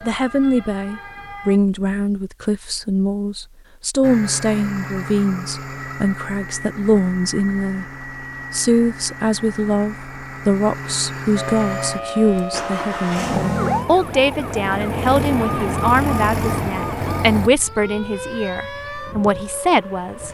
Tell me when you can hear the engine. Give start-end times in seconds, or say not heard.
4.0-17.5.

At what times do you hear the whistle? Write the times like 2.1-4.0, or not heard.
not heard.